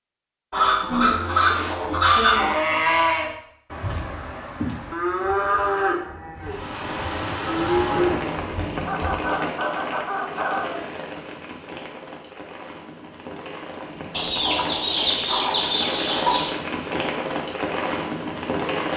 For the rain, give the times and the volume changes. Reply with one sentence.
The rain can be heard from 6.4 to 18.9 s, getting quieter then louder.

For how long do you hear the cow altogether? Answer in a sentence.
You can hear the cow for 8 seconds altogether.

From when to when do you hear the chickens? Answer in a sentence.
You can hear the chickens from 0.5 to 2.5 s, from 8.8 to 10.8 s and from 14.1 to 16.6 s.